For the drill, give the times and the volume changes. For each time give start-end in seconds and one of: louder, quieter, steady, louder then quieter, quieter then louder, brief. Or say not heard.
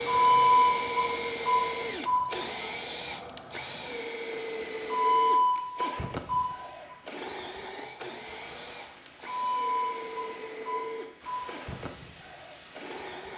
0.0-13.3 quieter.